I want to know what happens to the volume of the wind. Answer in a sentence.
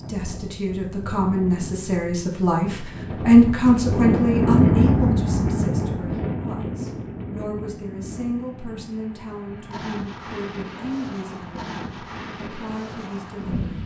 The volume of the wind goes up, then down.